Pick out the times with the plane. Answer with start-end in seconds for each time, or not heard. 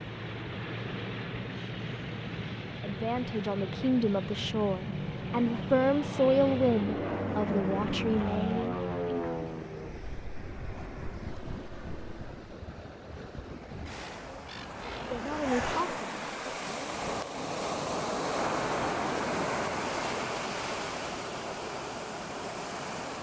0.0-12.6.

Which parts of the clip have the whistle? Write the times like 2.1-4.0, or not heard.
not heard.